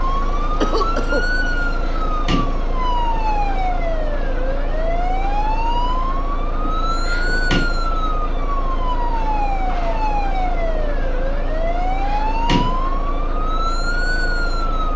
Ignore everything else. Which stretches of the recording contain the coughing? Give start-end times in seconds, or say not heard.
0.6-1.2.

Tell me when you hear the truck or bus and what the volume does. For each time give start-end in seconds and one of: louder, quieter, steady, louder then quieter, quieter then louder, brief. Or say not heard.
0.0-14.9 steady.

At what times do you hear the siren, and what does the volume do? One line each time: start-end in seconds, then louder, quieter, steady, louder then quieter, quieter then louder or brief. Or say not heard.
0.0-14.9 steady.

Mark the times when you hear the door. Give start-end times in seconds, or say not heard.
1.4-2.6, 6.6-7.7, 11.6-12.8.